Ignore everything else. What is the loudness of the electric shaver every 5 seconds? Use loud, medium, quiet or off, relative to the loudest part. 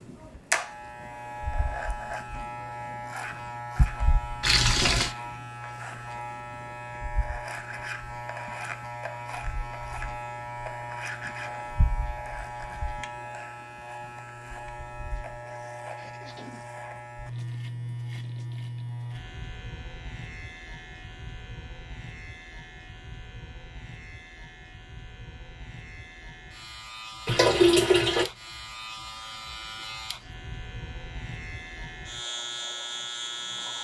loud, loud, loud, loud, medium, medium, loud.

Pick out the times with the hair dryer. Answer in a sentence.
You can't hear the hair dryer here.